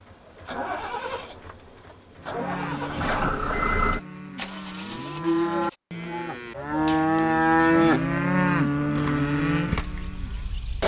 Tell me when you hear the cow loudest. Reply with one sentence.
The loudest moment of the cow is at 8 seconds.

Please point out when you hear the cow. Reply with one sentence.
The cow can be heard from 2.2 to 10.6 s.